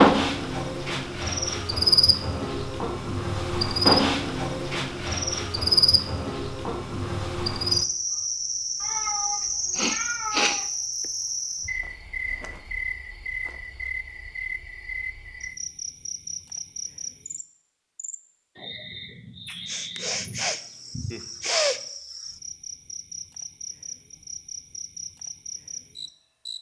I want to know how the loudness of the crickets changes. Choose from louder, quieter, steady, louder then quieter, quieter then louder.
quieter.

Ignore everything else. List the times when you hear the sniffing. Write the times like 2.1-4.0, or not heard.
9.8-11.1, 19.6-21.8.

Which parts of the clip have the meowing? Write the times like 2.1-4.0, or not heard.
8.8-10.7.